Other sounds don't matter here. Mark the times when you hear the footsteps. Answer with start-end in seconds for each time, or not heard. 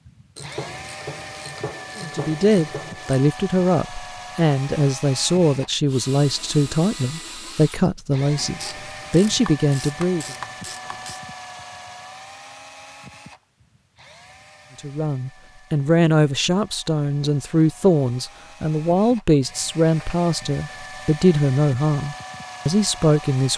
not heard.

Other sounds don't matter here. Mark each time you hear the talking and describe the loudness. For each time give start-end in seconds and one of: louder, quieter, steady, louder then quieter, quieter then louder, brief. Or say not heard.
1.9-10.3 steady
14.8-23.5 steady.